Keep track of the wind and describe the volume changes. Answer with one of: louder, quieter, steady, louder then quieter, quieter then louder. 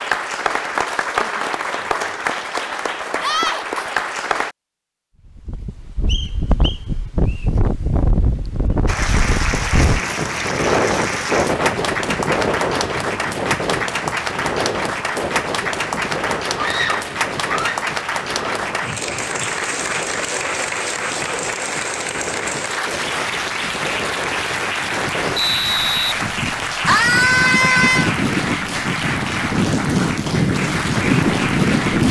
quieter then louder.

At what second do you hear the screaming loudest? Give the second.
27 s.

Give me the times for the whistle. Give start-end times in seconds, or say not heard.
6.0-7.5, 25.4-26.9.